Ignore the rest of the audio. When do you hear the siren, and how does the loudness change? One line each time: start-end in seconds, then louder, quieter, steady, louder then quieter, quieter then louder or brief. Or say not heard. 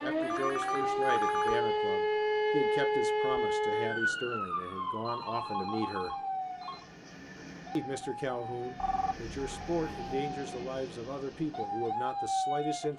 0.0-12.9 quieter then louder.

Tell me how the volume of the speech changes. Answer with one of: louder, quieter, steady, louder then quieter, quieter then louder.
steady.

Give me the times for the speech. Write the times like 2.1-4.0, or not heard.
0.0-6.2, 7.8-12.9.